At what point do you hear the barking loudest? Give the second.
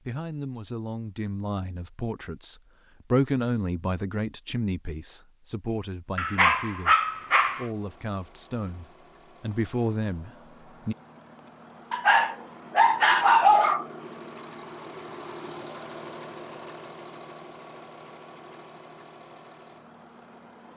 13 s.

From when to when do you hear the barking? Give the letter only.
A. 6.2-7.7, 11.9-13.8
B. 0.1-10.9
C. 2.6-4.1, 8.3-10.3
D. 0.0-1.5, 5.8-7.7
A.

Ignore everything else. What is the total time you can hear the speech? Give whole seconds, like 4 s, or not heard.
11 s.